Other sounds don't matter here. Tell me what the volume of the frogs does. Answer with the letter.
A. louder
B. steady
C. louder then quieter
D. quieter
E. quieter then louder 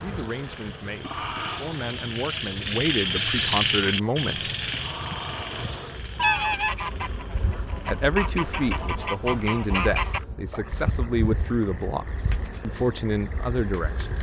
C.